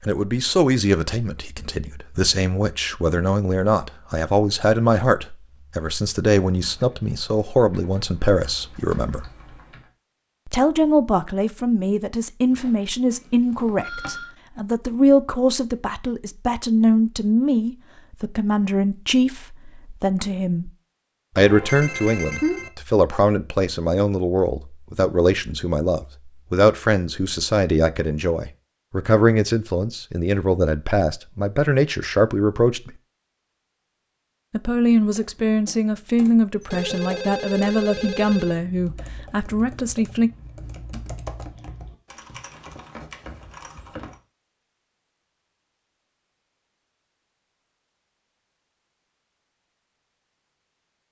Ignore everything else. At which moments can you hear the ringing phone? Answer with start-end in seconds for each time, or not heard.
12.5-14.3, 21.4-22.7, 36.6-38.6.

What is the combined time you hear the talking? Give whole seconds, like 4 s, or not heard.
37 s.